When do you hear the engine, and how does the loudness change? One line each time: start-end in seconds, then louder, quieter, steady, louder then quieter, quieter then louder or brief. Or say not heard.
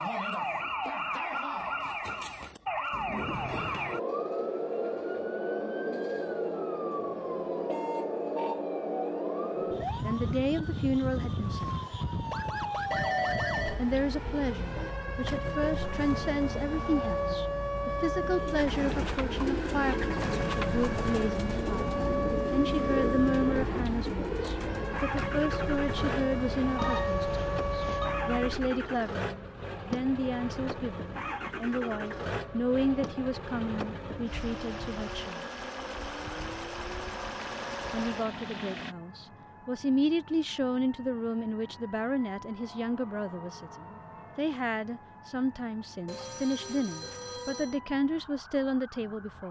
18.6-39.0 steady.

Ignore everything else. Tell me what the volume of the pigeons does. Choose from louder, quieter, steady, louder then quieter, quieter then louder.
steady.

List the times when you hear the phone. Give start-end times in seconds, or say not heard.
12.9-14.9, 26.8-28.1, 46.0-47.8.